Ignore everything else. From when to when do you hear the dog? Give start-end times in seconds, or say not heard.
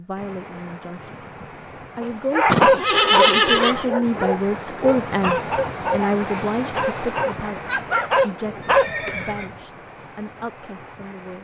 2.0-8.9.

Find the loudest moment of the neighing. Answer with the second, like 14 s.
3 s.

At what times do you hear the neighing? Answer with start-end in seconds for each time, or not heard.
2.5-3.9, 8.6-9.7.